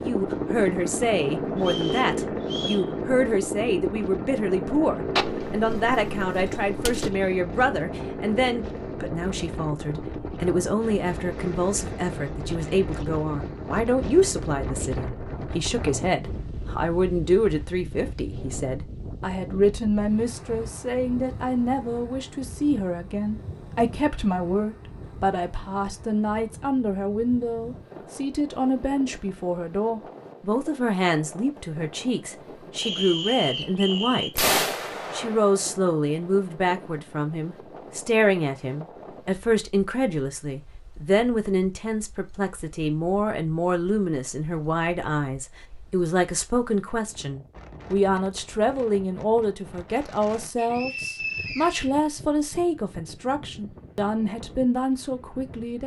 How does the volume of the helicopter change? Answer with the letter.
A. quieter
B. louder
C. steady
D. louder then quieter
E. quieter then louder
A.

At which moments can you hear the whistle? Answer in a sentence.
The whistle can be heard from 1.6 to 2.9 s, from 32.8 to 34.3 s and from 50.5 to 51.9 s.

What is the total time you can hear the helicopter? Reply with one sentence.
You can hear the helicopter for 16 seconds altogether.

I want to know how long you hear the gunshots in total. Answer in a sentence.
The gunshots can be heard for 3 seconds in total.